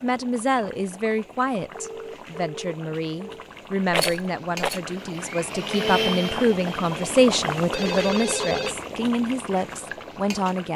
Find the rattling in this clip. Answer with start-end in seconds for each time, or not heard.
3.9-4.8.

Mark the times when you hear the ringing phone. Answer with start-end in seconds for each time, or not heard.
1.7-3.5, 7.7-8.8.